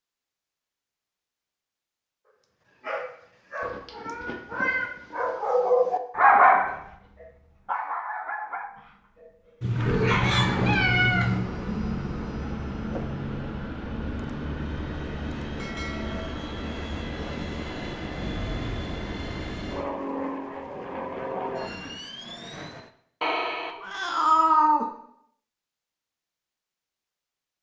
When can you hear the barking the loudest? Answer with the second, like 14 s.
6 s.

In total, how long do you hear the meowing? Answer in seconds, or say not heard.
5 s.